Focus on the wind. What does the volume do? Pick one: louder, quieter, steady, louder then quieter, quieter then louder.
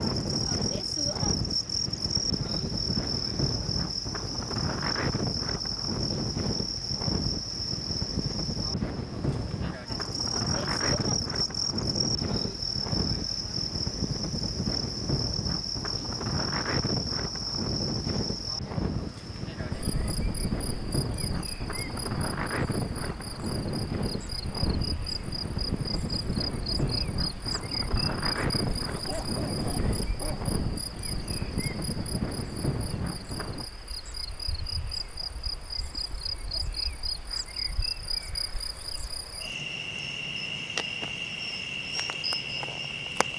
steady.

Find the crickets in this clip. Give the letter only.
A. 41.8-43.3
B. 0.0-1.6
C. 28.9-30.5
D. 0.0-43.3
D.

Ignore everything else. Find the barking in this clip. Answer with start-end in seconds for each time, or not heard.
28.9-30.5.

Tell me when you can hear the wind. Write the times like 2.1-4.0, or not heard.
0.0-33.6.